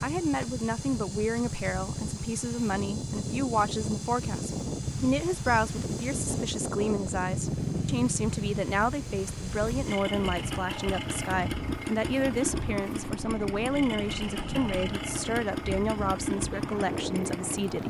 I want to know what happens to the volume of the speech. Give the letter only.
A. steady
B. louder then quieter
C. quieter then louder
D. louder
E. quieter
A.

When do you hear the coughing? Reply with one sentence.
The coughing can't be heard in this clip.